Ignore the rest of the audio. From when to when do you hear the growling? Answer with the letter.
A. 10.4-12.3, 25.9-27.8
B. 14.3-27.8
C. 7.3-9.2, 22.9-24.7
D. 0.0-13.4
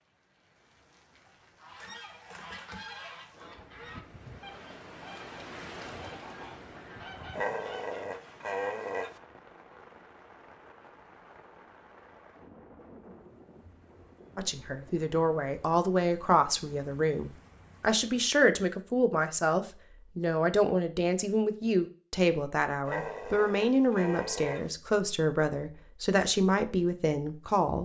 C.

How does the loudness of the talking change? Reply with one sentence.
The loudness of the talking stays about the same.